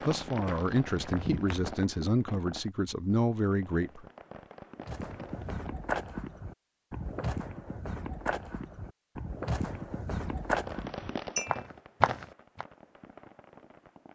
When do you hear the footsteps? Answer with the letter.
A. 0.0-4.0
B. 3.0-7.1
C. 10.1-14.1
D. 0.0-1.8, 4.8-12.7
D.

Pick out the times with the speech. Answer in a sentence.
The speech can be heard from 0.0 to 4.0 s.